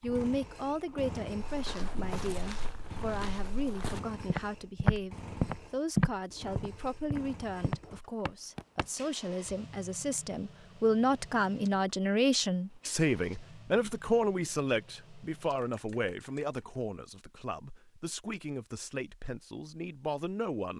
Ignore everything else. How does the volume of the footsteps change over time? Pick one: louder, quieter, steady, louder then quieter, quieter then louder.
louder then quieter.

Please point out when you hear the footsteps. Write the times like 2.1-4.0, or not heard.
1.4-8.8.